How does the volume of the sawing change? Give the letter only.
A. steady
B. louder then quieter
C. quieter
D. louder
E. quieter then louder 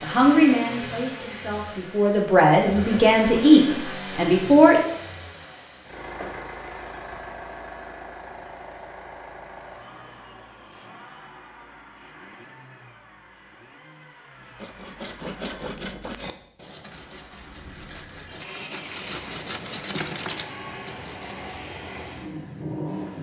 E.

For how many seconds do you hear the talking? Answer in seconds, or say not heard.
5 s.